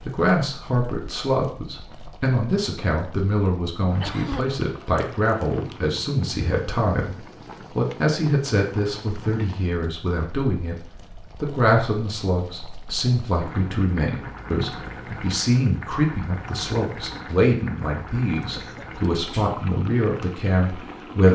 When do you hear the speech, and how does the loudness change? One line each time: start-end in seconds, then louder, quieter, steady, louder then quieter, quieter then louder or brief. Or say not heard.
0.0-21.3 steady.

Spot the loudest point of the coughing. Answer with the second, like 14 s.
4 s.